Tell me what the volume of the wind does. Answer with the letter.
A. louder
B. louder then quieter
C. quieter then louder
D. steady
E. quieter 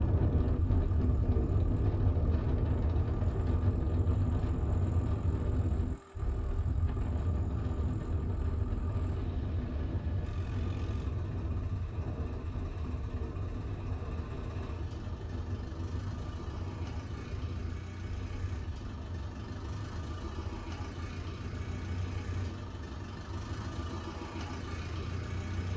E.